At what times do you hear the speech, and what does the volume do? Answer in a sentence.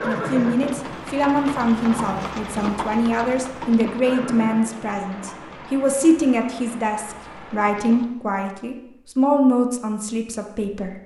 The speech can be heard from 0.0 to 11.0 s, at a steady volume.